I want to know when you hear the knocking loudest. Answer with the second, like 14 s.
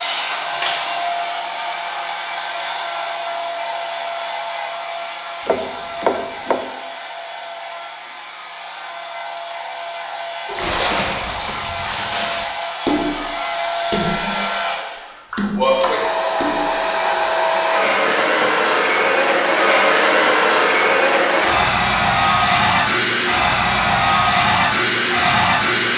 6 s.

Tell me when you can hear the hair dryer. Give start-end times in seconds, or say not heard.
0.0-25.9.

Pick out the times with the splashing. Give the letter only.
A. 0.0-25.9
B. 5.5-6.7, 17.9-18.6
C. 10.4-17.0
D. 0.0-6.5
C.